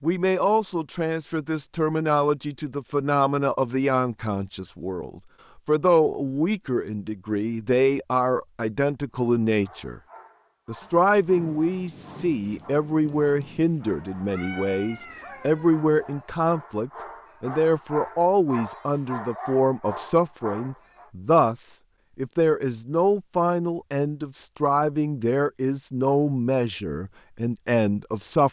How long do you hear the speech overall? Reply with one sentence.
You can hear the speech for 28 seconds altogether.